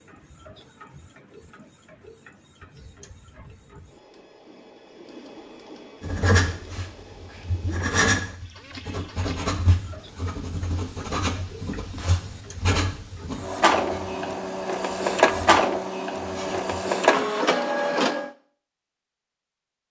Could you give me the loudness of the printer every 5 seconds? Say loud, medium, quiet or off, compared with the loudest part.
quiet, quiet, medium, loud.